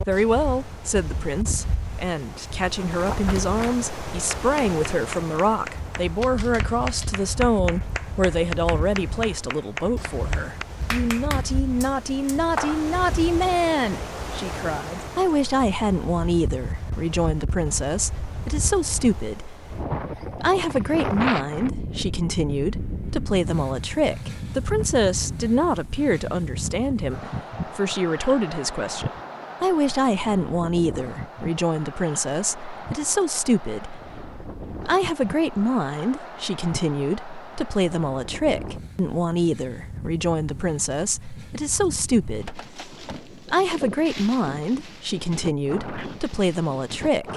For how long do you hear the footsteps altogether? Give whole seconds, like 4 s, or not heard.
not heard.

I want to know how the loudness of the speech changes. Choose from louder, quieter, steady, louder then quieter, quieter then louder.
steady.